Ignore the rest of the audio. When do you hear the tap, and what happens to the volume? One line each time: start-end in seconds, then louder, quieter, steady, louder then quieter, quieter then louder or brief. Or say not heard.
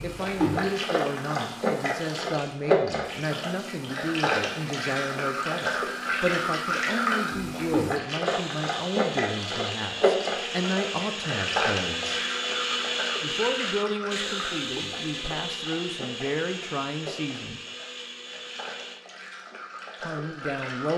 0.0-20.9 quieter.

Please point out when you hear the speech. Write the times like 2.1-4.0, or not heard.
0.0-12.2, 13.2-17.6, 20.0-20.9.